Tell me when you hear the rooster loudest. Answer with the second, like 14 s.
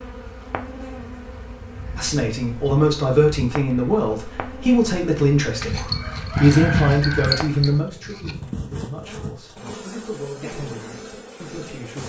7 s.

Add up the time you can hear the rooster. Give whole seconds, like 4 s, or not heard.
3 s.